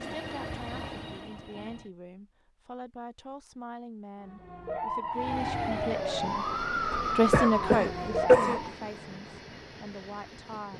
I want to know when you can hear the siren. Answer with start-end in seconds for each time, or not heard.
4.2-8.8.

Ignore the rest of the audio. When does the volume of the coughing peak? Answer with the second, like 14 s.
8 s.